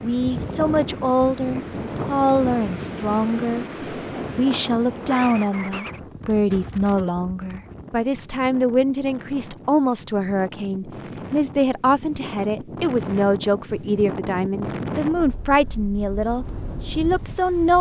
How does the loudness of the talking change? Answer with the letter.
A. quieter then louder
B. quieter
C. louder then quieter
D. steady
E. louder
D.